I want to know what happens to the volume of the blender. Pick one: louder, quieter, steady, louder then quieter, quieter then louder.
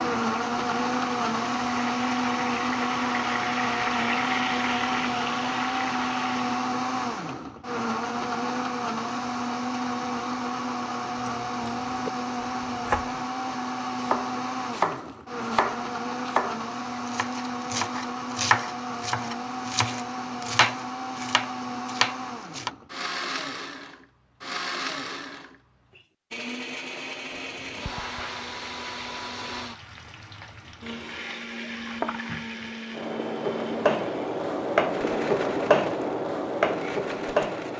quieter.